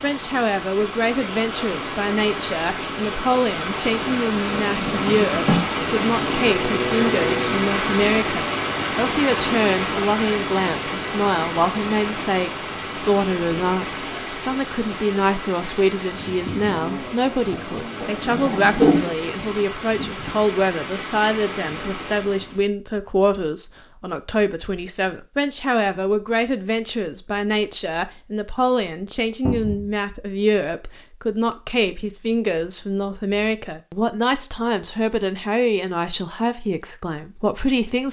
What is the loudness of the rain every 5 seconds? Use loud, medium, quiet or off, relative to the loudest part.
medium, loud, medium, medium, medium, off, off, off.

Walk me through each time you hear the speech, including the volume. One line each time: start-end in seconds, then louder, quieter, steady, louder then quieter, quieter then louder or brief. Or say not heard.
0.0-38.0 steady.